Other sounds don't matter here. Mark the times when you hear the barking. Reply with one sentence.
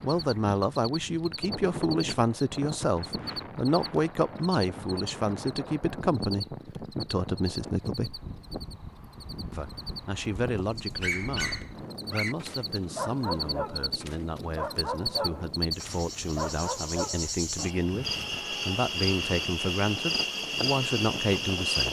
You can hear the barking from 10.8 to 17.9 s.